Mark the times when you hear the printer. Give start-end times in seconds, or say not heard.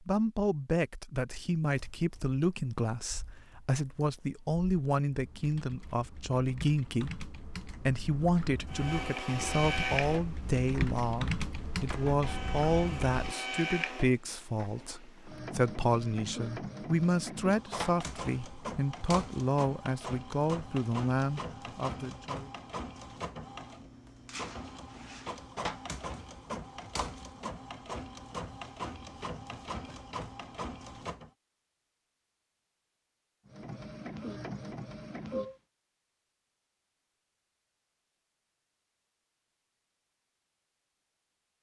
8.7-31.3, 33.5-35.5.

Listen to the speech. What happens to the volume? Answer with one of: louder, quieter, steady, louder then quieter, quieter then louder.
steady.